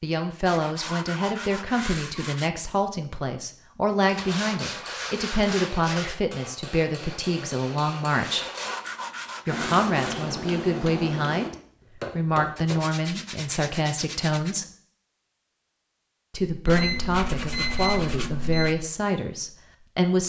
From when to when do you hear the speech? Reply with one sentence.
The speech can be heard from 0.0 to 8.4 s, from 9.4 to 14.7 s and from 16.3 to 20.2 s.